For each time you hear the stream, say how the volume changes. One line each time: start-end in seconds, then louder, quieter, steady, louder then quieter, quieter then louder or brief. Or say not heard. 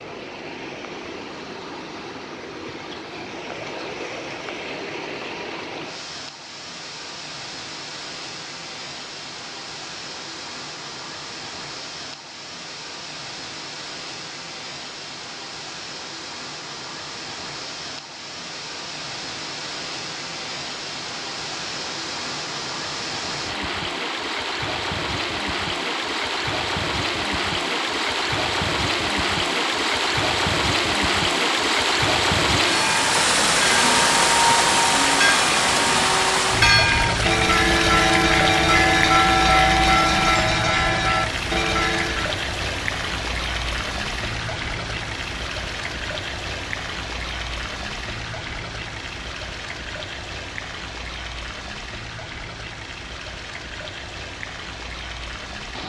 0.0-55.8 louder then quieter.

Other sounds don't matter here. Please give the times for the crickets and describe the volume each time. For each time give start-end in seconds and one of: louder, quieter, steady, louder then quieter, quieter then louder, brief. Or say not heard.
not heard.